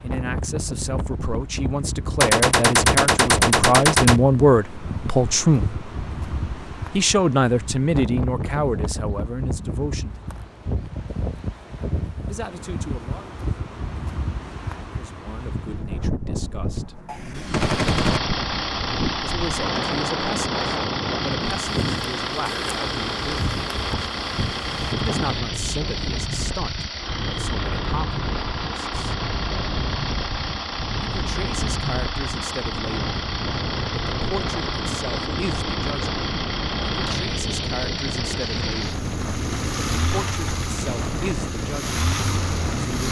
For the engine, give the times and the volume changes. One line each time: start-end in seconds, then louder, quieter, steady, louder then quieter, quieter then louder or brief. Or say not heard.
17.4-43.0 steady.